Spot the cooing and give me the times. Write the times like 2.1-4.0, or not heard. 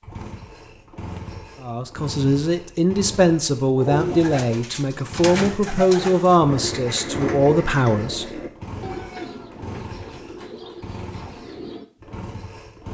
3.8-11.8.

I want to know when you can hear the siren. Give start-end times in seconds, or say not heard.
not heard.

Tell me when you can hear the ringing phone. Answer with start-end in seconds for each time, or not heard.
not heard.